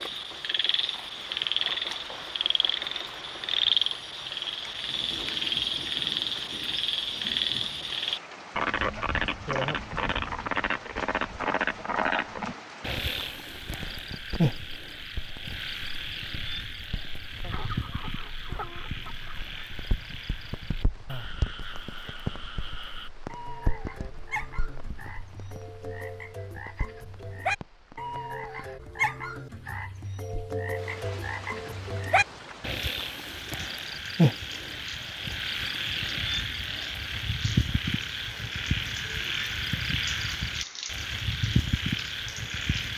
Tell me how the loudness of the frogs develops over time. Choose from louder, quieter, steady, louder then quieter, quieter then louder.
quieter then louder.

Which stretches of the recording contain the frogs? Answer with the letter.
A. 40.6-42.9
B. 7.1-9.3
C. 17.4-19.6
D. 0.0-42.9
D.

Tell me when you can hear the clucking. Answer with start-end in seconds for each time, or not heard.
17.4-19.6.